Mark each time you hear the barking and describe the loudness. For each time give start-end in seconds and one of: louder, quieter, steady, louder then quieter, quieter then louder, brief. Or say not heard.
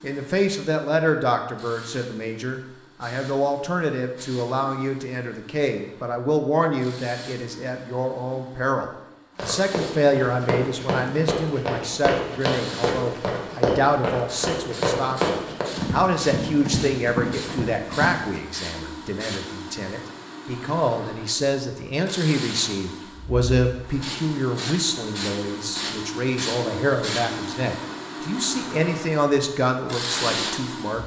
not heard.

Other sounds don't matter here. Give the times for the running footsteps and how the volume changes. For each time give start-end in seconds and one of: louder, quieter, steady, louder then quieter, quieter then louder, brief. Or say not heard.
9.3-18.4 steady.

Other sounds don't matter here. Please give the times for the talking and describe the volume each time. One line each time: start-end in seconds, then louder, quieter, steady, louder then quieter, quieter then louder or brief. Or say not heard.
0.0-31.0 steady.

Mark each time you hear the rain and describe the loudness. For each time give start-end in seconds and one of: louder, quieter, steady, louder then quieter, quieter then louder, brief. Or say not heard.
not heard.